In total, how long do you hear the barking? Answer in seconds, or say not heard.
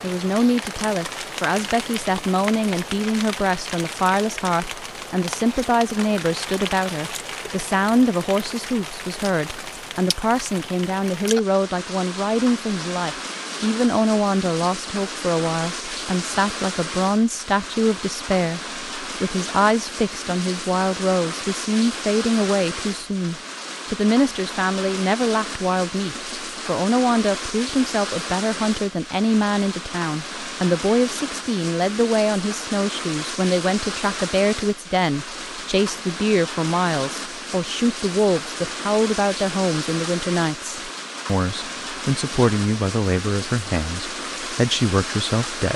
not heard.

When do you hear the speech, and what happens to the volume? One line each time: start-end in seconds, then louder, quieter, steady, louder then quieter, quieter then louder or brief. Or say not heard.
0.0-45.7 steady.